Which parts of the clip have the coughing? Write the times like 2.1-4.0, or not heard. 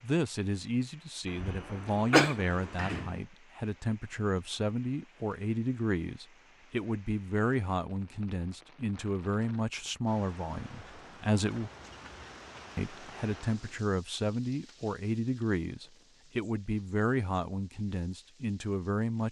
1.4-2.4.